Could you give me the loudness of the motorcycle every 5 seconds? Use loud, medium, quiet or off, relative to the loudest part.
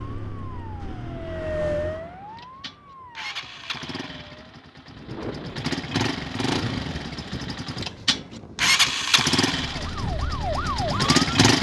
quiet, loud, loud.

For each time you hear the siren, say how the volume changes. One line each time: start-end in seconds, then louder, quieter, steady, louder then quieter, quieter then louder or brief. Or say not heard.
0.0-4.8 louder then quieter
9.6-11.2 brief.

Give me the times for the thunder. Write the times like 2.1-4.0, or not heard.
4.9-9.0.